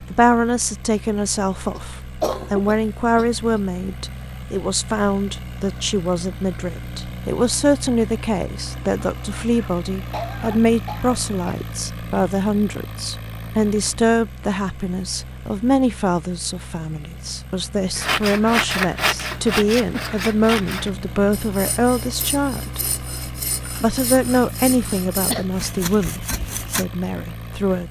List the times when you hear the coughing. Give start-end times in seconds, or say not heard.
1.7-3.6, 9.5-11.6, 24.9-25.4.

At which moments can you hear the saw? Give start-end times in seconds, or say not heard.
17.9-26.9.